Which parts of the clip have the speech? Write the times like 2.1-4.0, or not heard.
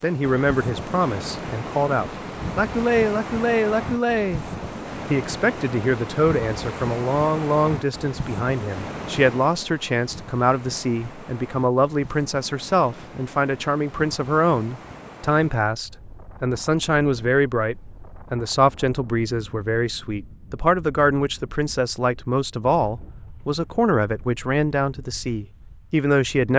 0.0-4.5, 5.1-26.5.